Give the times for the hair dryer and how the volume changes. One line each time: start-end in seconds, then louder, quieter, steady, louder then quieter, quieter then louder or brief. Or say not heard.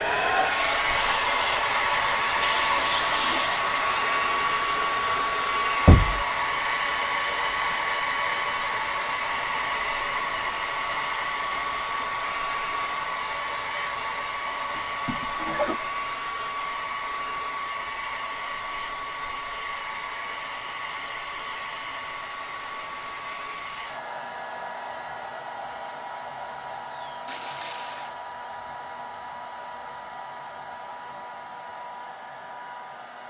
0.0-33.2 quieter.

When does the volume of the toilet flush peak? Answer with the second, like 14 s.
3 s.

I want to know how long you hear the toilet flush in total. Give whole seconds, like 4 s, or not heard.
3 s.